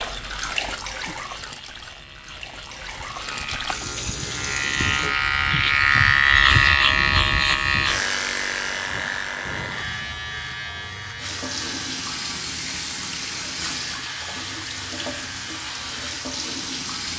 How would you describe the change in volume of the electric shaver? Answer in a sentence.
The loudness of the electric shaver goes up, then down.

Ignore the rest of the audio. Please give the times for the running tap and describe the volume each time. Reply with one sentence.
The running tap can be heard from 0.0 to 5.2 s, getting quieter then louder; and from 11.2 to 17.1 s, at a steady volume.